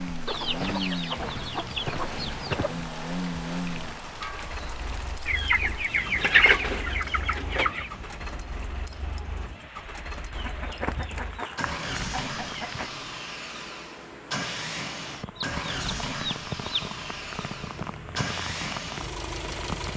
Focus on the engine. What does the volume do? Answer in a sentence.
The volume of the engine goes down, then up.